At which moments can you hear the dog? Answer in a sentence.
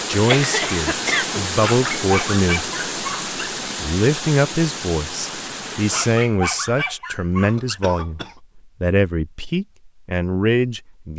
The dog can be heard from 1.6 to 3.5 s and from 5.9 to 7.8 s.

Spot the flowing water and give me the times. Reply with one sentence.
The flowing water can be heard from 0.0 to 6.3 s.